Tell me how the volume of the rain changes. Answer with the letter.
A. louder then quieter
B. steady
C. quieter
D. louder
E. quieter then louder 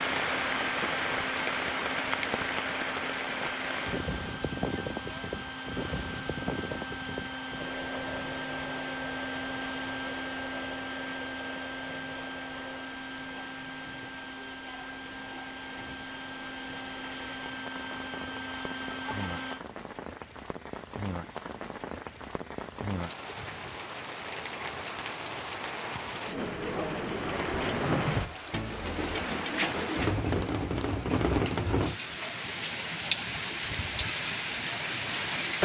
E.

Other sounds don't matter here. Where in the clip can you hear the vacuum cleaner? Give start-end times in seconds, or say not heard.
0.1-19.6.